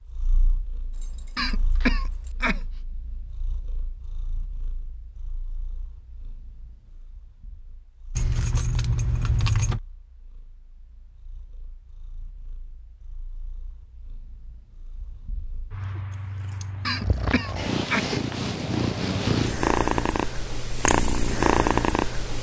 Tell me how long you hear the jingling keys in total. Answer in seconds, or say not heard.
4 s.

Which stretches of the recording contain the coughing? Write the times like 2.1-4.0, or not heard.
1.4-2.6, 16.9-18.1.